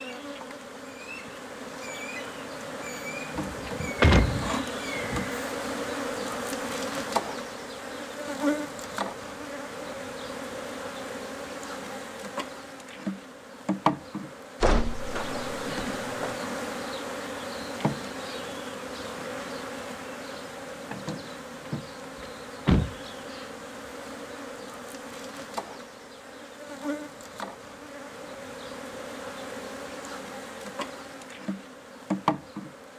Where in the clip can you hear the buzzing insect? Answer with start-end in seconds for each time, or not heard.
0.0-32.9.